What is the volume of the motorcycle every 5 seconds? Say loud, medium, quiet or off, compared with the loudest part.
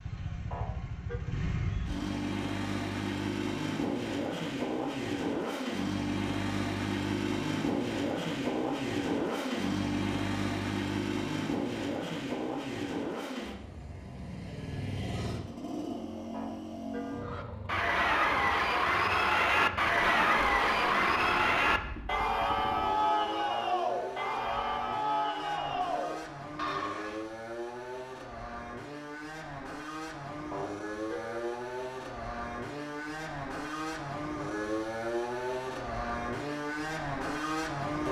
loud, loud, loud, medium, medium, medium, medium, loud.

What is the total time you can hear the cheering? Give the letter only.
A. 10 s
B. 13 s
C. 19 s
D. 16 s
A.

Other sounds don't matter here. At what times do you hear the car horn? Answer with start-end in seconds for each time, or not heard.
0.5-1.2, 16.3-17.4, 30.5-31.6.